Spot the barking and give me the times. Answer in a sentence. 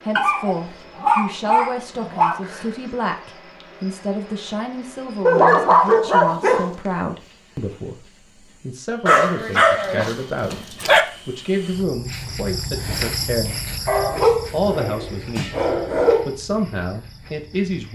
The barking can be heard from 0.1 to 2.4 s, from 5.2 to 6.7 s, from 9.1 to 11.1 s and from 13.8 to 16.4 s.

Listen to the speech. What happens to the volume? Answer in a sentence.
The volume of the speech stays about the same.